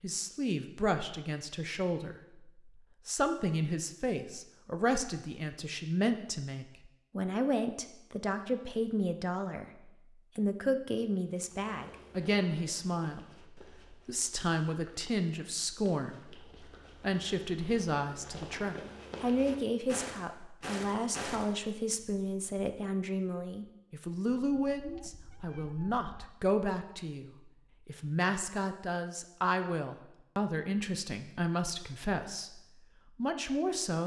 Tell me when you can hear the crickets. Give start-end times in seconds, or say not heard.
not heard.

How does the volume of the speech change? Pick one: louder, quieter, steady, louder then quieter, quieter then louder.
steady.